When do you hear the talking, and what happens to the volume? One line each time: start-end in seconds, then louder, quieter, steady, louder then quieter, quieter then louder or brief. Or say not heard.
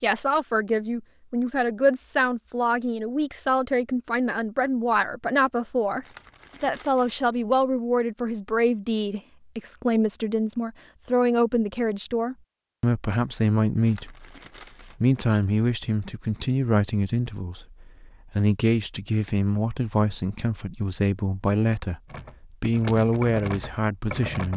0.0-14.2 steady
15.0-24.5 steady.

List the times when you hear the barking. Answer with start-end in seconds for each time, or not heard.
not heard.